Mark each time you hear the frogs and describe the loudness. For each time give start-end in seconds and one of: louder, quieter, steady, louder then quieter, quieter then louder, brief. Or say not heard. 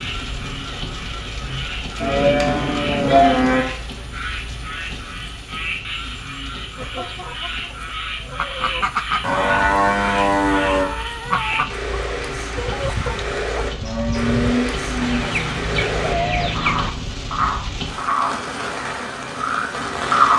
0.0-20.3 louder.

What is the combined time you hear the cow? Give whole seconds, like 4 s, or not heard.
5 s.